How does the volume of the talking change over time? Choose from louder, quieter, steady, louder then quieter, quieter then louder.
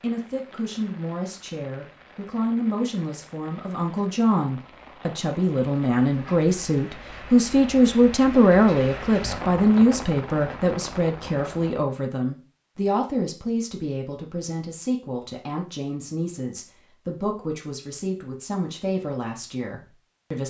louder then quieter.